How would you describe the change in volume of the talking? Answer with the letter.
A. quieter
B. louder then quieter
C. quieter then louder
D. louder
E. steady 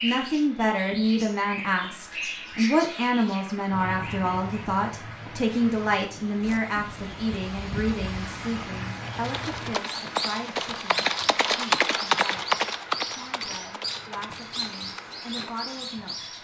A.